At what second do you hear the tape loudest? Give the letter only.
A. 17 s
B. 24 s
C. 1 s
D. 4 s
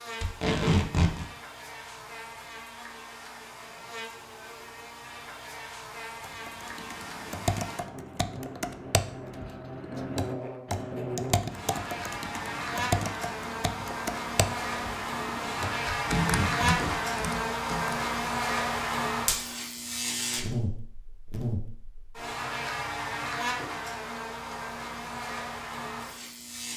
C.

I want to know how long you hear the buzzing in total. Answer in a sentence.
The buzzing can be heard for 27 seconds in total.